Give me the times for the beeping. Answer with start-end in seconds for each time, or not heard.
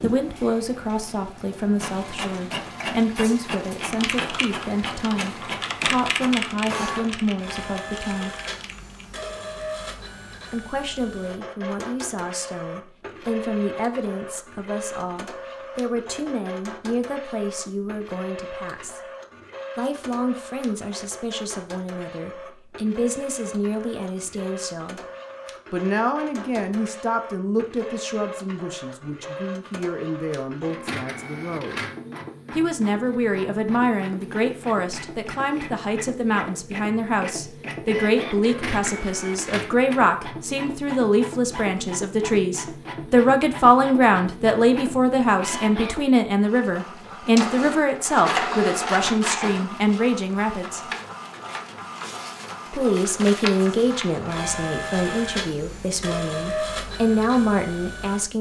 not heard.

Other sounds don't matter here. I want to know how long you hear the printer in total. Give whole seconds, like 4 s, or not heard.
58 s.